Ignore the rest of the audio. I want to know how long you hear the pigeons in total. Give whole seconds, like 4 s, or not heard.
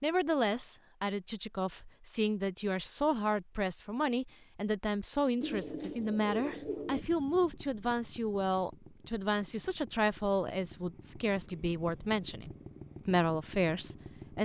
2 s.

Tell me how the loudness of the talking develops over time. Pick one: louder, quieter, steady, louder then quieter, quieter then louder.
steady.